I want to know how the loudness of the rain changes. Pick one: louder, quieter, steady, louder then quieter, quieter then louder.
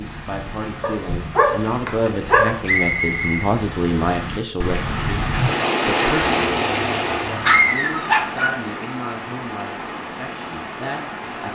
louder then quieter.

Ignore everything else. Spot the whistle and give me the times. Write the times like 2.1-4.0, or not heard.
2.6-3.5.